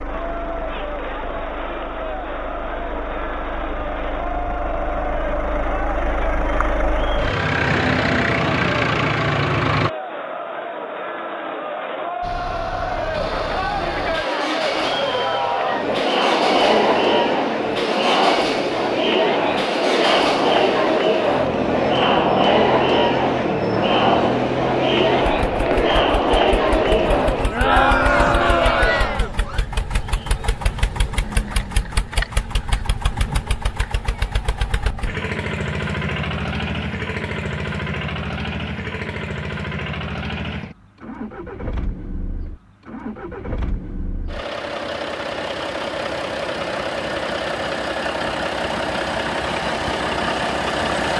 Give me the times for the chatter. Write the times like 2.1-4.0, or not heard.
0.0-29.6.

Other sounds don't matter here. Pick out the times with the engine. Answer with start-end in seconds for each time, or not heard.
0.0-9.9, 12.2-51.1.